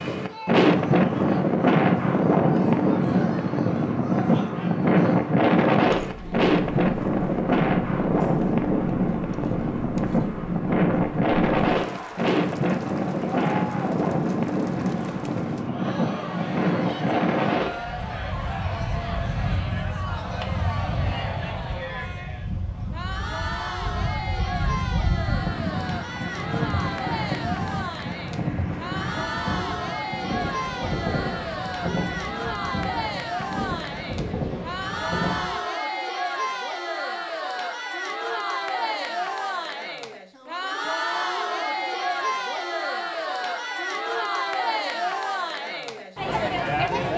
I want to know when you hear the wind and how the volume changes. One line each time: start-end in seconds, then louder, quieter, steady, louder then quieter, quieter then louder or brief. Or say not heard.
0.0-35.6 quieter.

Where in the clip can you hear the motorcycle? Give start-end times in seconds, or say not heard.
not heard.